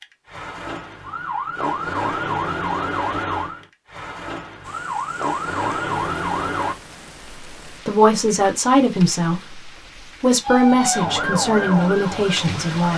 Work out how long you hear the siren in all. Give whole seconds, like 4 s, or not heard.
9 s.